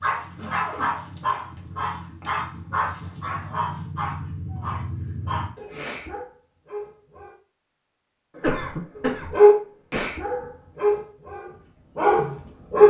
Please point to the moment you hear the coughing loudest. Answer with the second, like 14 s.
9 s.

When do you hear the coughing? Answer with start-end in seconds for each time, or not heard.
0.3-1.0, 8.3-10.2.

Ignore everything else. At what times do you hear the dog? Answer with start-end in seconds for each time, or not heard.
0.0-7.3, 8.9-12.8.